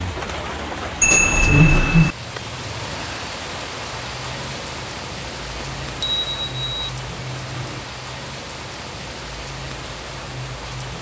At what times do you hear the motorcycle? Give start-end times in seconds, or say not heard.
not heard.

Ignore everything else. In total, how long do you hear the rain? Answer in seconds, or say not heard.
11 s.